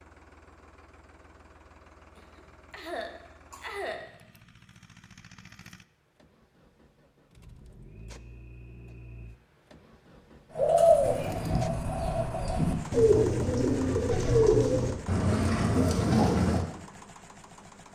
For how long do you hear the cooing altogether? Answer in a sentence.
The cooing can be heard for 6 seconds in total.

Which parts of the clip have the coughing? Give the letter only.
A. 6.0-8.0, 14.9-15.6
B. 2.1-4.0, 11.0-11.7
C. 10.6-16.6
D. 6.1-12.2
B.